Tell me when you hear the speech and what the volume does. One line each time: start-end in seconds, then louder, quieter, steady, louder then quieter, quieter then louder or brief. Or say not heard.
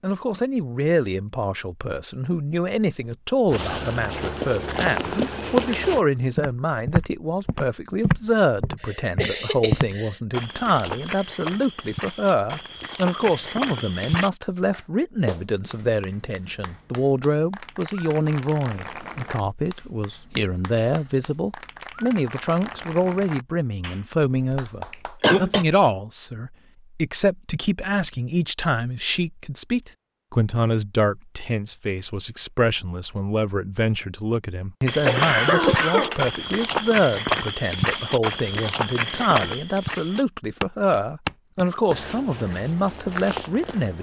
0.0-43.9 steady.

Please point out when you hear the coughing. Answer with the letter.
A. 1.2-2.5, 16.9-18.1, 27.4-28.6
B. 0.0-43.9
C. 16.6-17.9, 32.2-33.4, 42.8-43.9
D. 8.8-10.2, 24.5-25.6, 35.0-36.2
D.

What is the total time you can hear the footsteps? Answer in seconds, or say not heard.
20 s.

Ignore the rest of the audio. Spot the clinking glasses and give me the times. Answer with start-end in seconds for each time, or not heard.
not heard.